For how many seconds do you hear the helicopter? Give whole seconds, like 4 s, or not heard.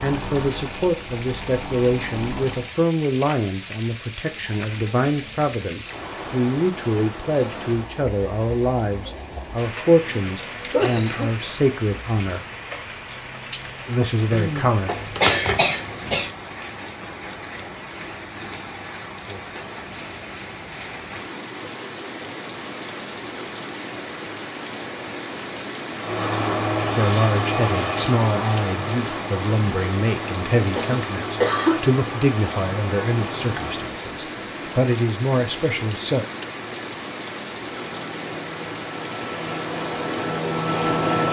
14 s.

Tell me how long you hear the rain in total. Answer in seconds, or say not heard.
41 s.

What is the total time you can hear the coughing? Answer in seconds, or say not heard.
5 s.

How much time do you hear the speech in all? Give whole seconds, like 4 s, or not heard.
23 s.